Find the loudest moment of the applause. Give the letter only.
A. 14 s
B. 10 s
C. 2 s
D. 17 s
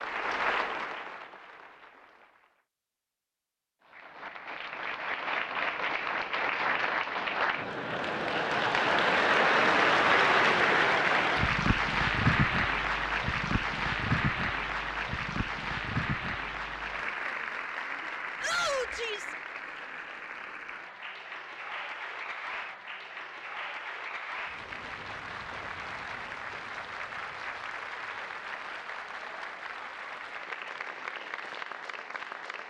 B.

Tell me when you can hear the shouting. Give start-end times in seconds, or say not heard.
18.4-19.4.